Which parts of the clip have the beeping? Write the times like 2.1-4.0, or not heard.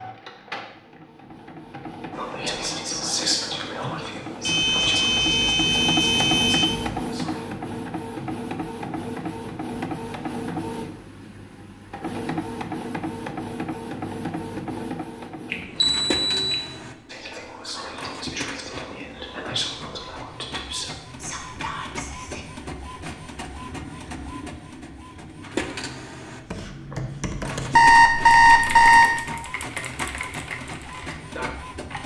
4.5-7.0, 15.5-16.6, 27.7-29.1.